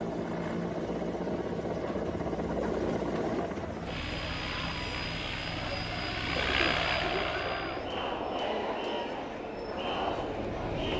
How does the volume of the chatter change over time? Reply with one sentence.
The volume of the chatter goes up.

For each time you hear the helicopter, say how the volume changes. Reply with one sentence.
You can hear the helicopter from 0.0 to 10.9 s, getting quieter.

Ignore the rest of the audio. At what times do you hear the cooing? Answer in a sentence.
The cooing can be heard from 1.8 to 3.5 s and from 5.5 to 7.5 s.